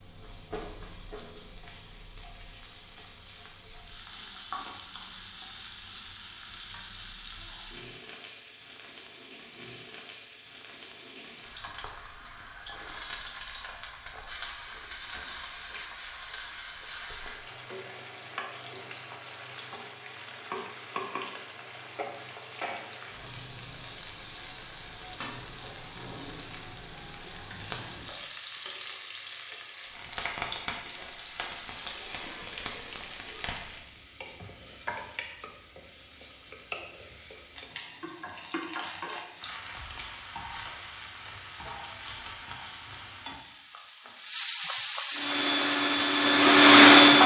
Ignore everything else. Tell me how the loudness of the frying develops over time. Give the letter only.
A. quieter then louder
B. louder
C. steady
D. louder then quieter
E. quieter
B.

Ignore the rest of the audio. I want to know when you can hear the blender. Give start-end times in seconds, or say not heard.
45.1-47.2.